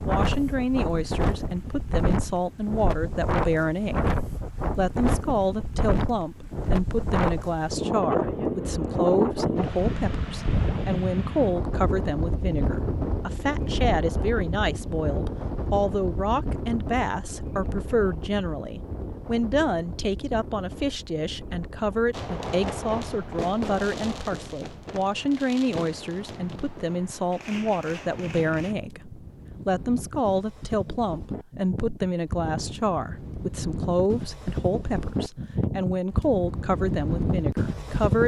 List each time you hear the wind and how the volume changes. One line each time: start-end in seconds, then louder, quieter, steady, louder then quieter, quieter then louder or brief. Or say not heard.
0.0-38.2 quieter then louder.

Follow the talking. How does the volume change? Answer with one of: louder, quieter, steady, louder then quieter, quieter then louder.
steady.